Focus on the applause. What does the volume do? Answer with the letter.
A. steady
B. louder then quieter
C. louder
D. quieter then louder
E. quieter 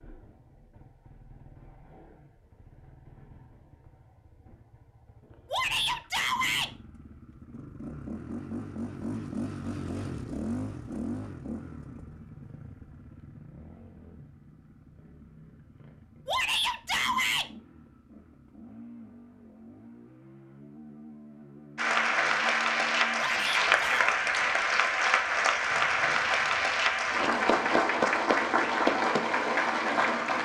A.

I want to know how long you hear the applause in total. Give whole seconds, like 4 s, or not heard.
9 s.